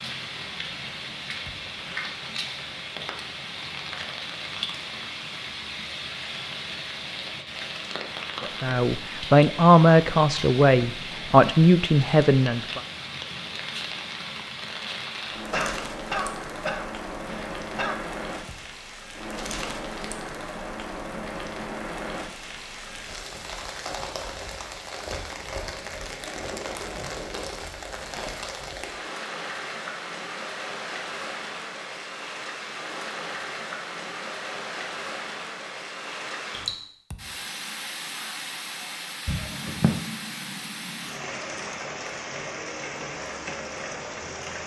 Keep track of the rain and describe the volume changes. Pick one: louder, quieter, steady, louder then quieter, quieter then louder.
steady.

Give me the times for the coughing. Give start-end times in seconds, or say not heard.
15.3-18.0, 39.2-40.0.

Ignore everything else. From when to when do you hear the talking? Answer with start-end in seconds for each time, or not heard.
8.4-12.8.